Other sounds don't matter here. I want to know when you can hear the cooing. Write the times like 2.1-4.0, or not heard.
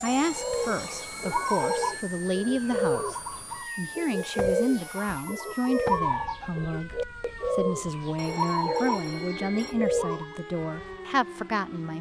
0.3-10.3.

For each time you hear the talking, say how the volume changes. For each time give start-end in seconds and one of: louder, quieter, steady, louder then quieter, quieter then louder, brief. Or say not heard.
0.0-11.9 steady.